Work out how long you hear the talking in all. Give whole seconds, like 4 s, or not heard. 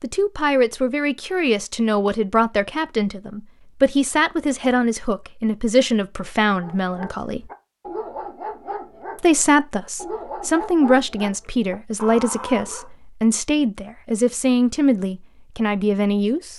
15 s.